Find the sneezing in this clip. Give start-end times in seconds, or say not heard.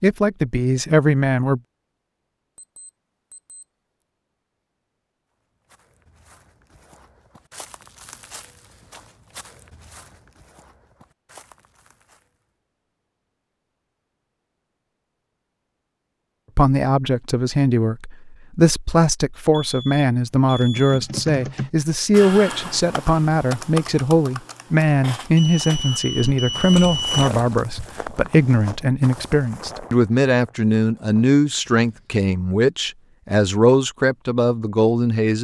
not heard.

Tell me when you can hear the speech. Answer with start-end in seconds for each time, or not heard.
0.0-1.6, 16.6-35.4.